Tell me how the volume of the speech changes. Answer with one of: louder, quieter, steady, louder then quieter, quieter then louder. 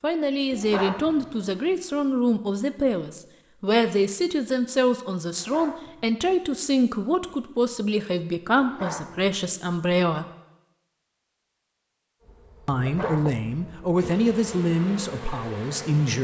steady.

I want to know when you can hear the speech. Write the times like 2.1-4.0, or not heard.
0.0-10.2, 12.7-16.1.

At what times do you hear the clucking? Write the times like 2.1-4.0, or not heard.
not heard.